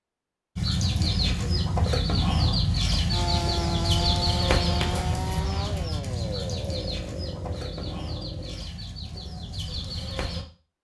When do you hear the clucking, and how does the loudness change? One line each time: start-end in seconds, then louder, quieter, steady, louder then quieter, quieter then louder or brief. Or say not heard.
0.6-10.4 quieter.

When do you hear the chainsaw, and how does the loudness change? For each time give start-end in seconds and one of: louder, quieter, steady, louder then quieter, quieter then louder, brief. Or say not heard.
3.1-8.7 quieter.